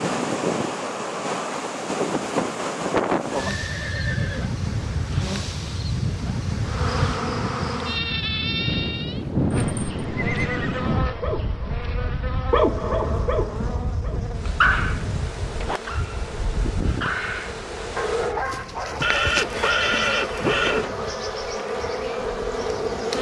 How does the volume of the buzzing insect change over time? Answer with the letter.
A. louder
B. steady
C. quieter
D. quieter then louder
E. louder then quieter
D.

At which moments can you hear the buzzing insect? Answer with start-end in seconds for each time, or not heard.
6.6-23.1.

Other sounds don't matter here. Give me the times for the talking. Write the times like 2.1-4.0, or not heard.
not heard.